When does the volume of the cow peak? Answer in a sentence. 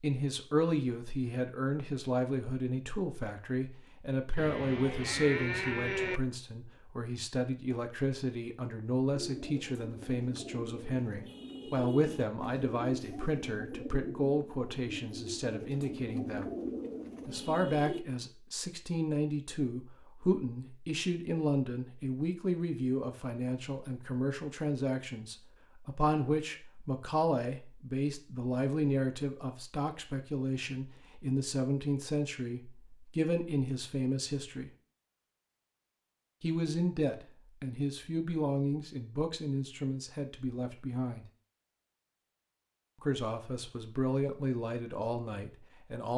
The volume of the cow peaks at 6 seconds.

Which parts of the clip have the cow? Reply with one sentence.
You can hear the cow from 4.3 to 6.2 s.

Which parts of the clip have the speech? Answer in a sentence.
The speech can be heard from 0.0 to 16.5 s, from 17.2 to 34.7 s, from 36.4 to 41.2 s and from 43.0 to 46.1 s.